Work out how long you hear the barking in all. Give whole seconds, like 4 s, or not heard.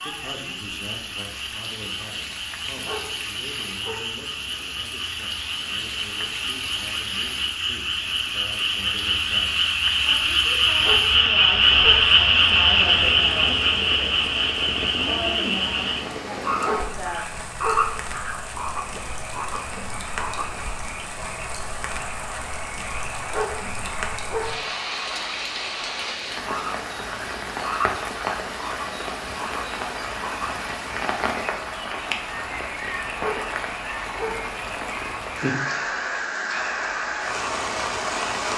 7 s.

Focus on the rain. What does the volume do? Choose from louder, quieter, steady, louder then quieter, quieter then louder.
louder.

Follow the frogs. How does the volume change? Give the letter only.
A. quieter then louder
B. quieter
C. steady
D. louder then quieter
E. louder
D.